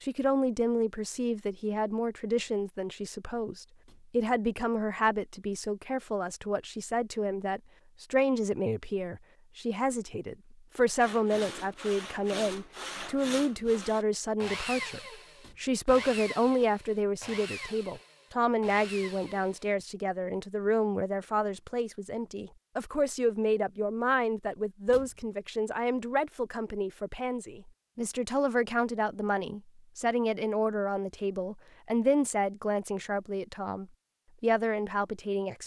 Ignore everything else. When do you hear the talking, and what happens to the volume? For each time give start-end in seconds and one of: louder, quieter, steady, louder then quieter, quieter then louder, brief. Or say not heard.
0.0-35.6 steady.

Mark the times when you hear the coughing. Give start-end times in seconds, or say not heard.
not heard.